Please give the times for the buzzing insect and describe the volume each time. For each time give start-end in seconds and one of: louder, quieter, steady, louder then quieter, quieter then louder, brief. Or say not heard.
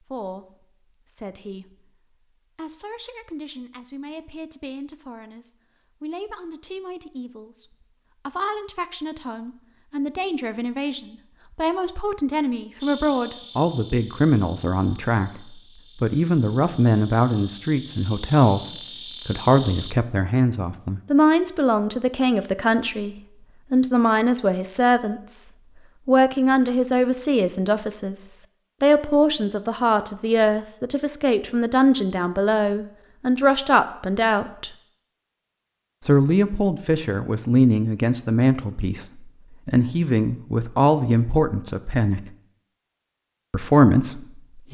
12.8-19.9 quieter then louder.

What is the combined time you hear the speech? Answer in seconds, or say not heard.
42 s.